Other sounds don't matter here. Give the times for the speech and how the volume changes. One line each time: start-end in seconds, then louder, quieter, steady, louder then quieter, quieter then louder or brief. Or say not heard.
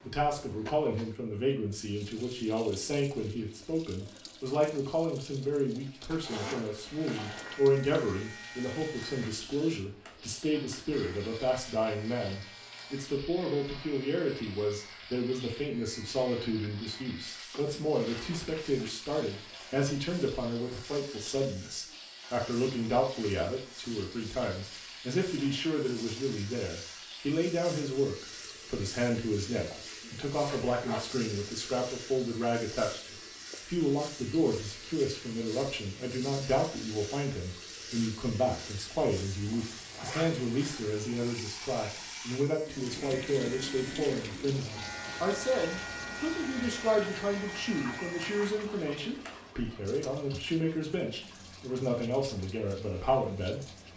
0.0-53.7 steady.